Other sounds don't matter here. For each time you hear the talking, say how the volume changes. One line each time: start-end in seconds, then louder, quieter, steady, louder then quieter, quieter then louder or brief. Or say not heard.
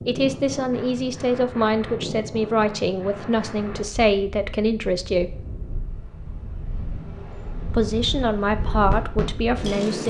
0.1-5.5 steady
7.7-10.0 brief.